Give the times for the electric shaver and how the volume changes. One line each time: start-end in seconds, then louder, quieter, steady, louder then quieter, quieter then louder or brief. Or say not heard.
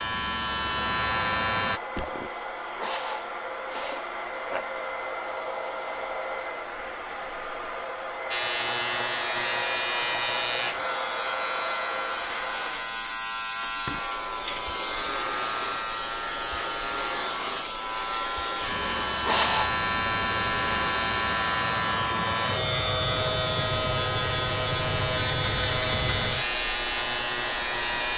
0.0-1.8 brief
8.3-28.1 steady.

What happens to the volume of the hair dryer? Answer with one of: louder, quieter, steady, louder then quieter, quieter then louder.
steady.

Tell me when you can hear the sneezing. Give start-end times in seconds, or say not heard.
2.8-4.7, 19.2-19.8.